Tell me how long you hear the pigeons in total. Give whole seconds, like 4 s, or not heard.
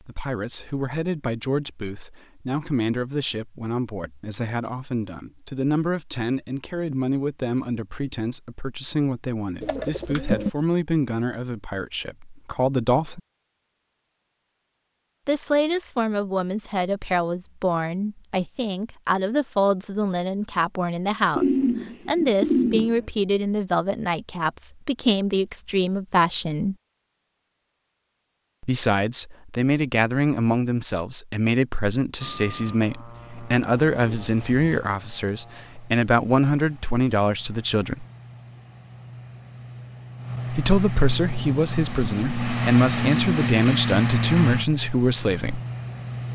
4 s.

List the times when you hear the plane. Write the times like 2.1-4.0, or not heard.
32.2-46.3.